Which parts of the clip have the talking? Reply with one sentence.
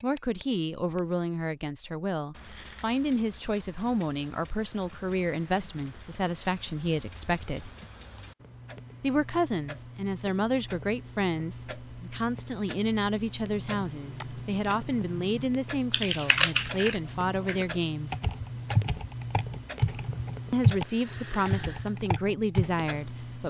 You can hear the talking from 0.0 to 7.8 s, from 9.0 to 18.1 s and from 20.5 to 23.4 s.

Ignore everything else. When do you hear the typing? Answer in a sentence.
You can hear the typing from 13.4 to 22.7 s.